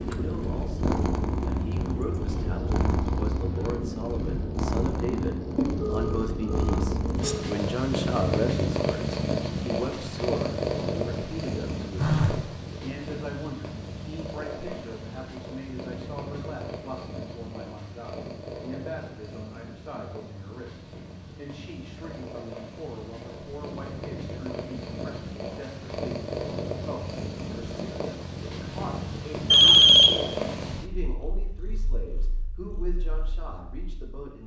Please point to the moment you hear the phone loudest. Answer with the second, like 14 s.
30 s.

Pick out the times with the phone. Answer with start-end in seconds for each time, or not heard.
5.5-7.5, 11.9-12.4, 29.5-30.6.